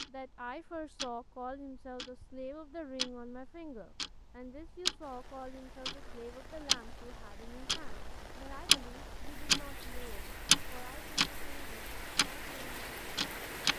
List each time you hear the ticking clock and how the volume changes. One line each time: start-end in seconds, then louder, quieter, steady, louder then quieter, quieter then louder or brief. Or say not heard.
0.0-13.7 louder then quieter.